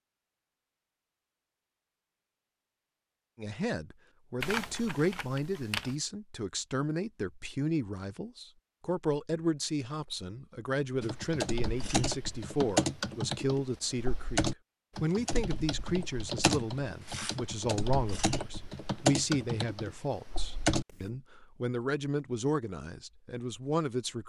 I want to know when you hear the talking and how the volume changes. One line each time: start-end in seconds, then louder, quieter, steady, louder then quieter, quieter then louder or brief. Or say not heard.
3.4-24.2 steady.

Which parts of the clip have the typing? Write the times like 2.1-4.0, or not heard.
4.4-6.0, 11.0-21.1.